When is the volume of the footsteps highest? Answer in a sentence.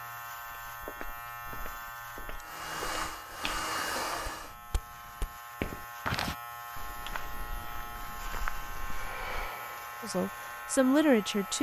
The loudest moment of the footsteps is at 6 seconds.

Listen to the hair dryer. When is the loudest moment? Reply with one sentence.
The volume of the hair dryer peaks at 4 seconds.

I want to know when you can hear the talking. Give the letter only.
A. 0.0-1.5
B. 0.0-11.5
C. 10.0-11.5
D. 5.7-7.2
C.